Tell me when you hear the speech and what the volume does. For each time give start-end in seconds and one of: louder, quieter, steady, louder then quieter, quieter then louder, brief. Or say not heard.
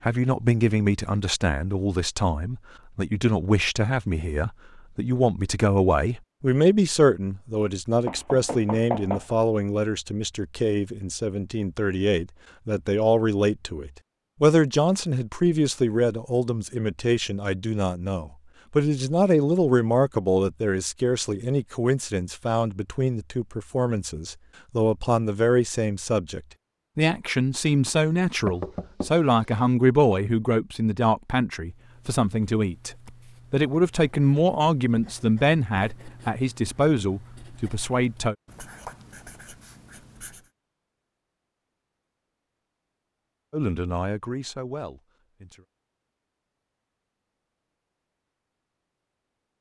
0.0-38.4 steady
43.5-45.6 brief.